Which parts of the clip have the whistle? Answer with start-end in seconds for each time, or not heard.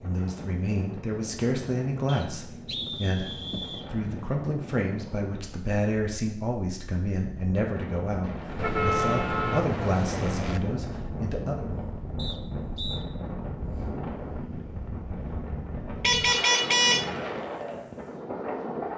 2.0-3.9, 12.2-13.0.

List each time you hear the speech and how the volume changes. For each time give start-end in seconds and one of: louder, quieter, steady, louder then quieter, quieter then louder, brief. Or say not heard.
0.0-11.7 steady.